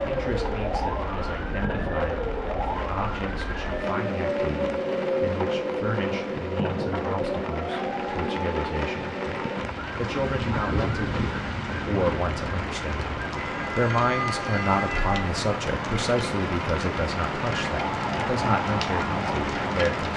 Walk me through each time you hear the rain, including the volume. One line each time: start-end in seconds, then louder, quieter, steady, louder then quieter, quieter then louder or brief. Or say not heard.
0.0-20.1 louder.